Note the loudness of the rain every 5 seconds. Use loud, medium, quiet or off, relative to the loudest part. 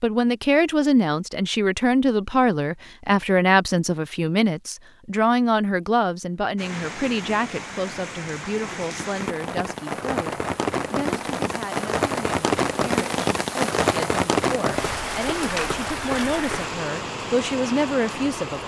off, medium, loud, medium.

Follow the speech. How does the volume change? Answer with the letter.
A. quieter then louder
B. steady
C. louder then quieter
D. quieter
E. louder
A.